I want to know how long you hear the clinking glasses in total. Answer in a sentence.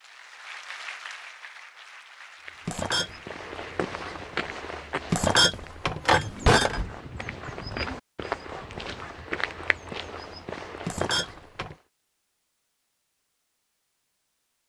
You can hear the clinking glasses for 3 seconds altogether.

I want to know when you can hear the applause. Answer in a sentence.
You can hear the applause from 0.0 to 5.1 s.